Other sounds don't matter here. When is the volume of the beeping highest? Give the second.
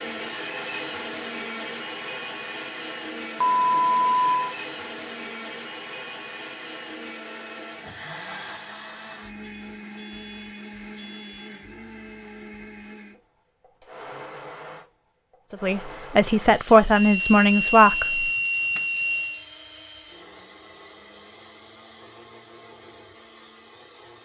4 s.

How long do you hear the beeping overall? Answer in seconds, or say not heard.
6 s.